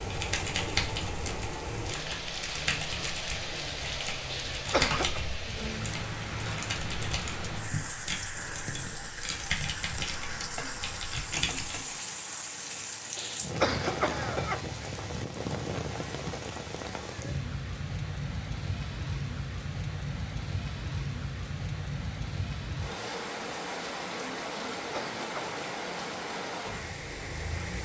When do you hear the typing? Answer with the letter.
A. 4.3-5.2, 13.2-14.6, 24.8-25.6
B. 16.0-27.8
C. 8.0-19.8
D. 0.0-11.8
D.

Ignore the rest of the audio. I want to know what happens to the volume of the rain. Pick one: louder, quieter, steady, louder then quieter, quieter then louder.
steady.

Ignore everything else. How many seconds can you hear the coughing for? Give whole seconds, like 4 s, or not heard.
3 s.